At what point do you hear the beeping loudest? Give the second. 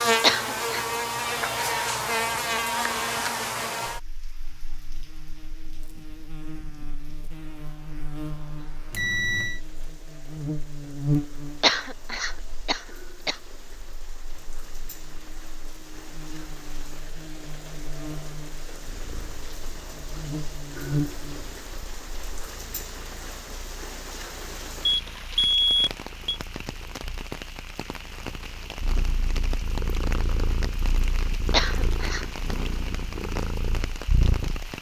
26 s.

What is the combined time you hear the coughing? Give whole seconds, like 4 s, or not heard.
3 s.